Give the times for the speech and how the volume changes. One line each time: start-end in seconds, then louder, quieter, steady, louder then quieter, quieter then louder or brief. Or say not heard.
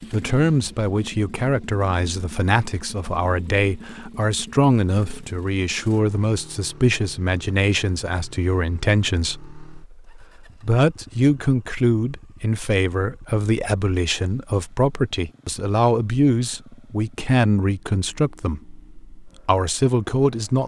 0.1-20.6 steady.